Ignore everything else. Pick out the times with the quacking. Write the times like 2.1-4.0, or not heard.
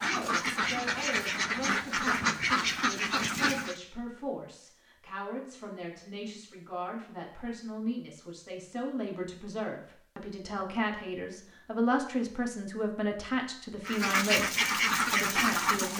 0.0-3.8, 13.8-15.9.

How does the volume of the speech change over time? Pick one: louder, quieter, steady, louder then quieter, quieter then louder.
louder.